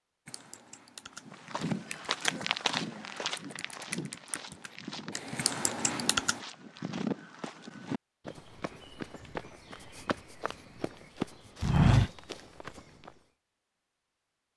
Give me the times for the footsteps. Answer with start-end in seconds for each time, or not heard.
1.2-13.1.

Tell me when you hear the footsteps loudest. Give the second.
12 s.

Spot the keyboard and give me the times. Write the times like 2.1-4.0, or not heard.
0.2-6.4.